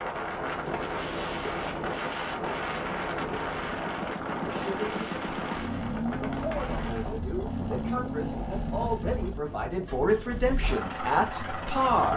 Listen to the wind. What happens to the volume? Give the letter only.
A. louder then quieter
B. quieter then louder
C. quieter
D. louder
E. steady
C.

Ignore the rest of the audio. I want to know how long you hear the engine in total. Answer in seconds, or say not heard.
12 s.